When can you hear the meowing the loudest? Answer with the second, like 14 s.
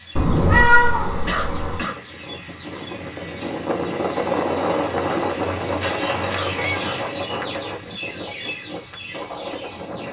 1 s.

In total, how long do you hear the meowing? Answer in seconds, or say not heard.
3 s.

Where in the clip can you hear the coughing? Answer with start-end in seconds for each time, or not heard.
1.2-2.0, 6.2-7.0.